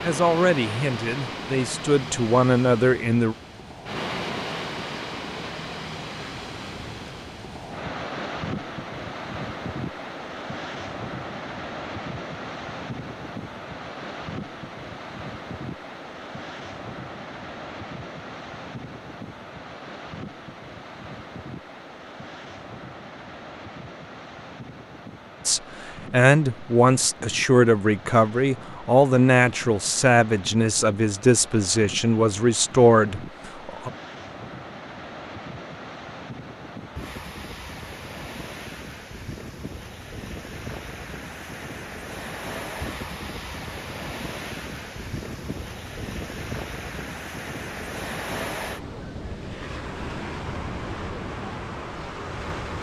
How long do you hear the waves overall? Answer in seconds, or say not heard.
53 s.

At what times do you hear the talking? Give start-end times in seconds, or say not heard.
0.0-3.4, 25.4-33.9.